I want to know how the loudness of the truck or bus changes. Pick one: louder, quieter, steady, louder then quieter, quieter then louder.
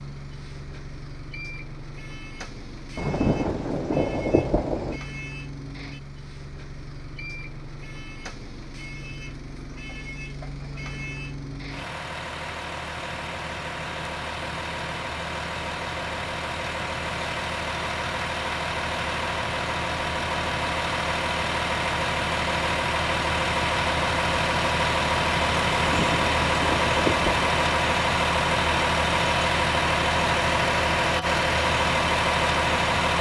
louder.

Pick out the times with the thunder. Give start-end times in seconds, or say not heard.
3.0-5.0, 25.7-27.5.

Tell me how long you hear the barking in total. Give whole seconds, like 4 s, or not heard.
not heard.